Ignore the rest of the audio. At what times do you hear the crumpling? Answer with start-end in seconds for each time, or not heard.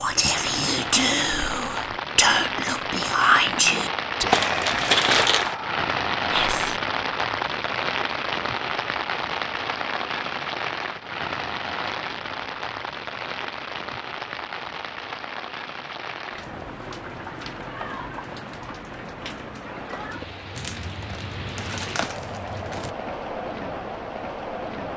4.3-5.5, 20.6-22.9.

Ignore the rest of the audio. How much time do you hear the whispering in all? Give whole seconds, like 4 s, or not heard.
7 s.